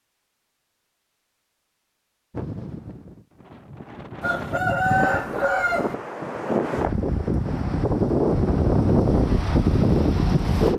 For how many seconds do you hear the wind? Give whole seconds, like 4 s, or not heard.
8 s.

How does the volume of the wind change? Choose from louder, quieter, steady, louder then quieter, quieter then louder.
louder.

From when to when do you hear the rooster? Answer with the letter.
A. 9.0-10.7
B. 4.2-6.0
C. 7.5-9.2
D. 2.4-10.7
B.